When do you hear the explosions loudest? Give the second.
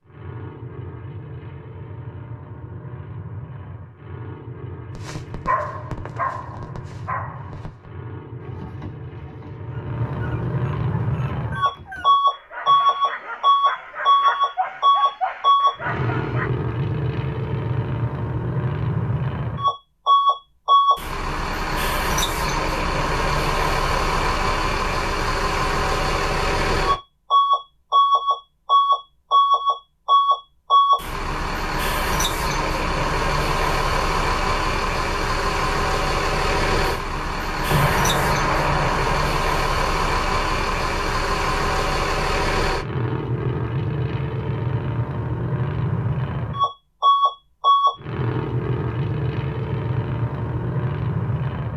38 s.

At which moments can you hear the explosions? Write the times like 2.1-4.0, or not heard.
37.6-39.1.